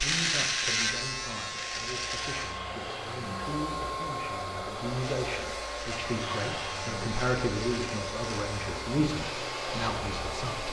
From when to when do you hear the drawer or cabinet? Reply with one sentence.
You can hear the drawer or cabinet from 2.4 to 3.5 s and from 6.0 to 7.0 s.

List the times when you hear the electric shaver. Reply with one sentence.
You can hear the electric shaver from 0.0 to 2.6 s and from 4.8 to 10.6 s.